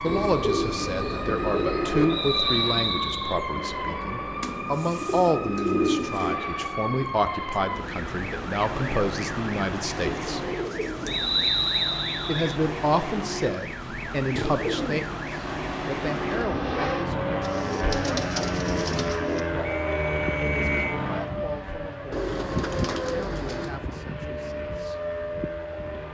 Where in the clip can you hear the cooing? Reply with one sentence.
The cooing can be heard from 0.1 to 2.0 s, from 4.4 to 6.4 s, from 9.9 to 11.5 s, from 14.3 to 15.1 s, from 17.4 to 19.4 s and from 22.1 to 23.8 s.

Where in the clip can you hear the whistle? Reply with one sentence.
The whistle can be heard from 2.1 to 3.4 s, from 11.1 to 12.6 s and from 19.6 to 21.0 s.